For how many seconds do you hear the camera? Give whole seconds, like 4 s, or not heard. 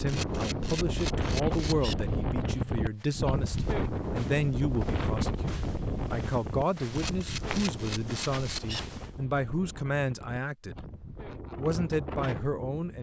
4 s.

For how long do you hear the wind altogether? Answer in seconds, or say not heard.
13 s.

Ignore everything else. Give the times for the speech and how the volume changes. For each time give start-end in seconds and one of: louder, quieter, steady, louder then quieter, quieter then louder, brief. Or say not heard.
0.0-10.8 steady
11.6-12.9 brief.